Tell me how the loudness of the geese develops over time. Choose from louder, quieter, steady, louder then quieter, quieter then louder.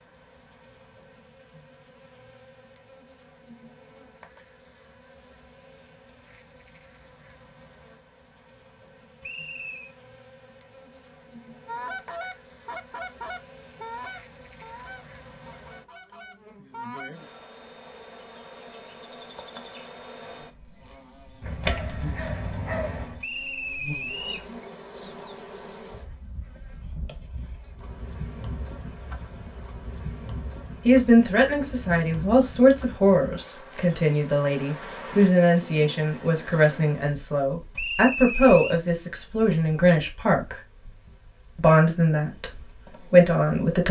quieter.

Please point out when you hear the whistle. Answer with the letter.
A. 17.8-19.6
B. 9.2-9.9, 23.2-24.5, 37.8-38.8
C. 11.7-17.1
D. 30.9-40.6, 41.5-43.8
B.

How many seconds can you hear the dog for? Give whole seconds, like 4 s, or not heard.
2 s.